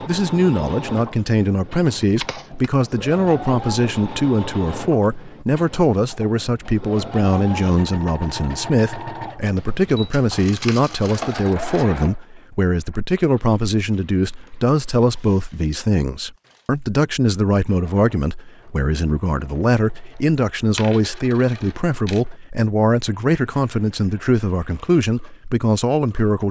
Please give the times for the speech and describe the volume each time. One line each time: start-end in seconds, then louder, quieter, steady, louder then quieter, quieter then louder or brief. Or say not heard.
0.0-26.4 steady.